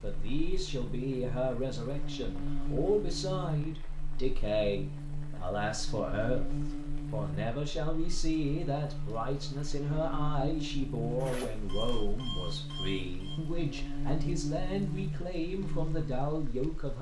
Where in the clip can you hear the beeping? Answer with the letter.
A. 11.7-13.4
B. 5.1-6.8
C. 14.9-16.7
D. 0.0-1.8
A.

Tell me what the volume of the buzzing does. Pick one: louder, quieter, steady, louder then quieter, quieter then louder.
steady.